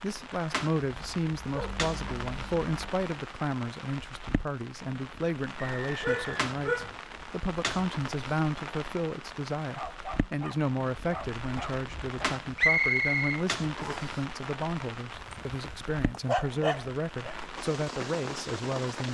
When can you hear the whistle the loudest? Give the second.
13 s.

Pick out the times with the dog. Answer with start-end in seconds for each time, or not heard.
0.9-2.9, 6.0-7.0, 9.6-12.3, 15.1-17.4.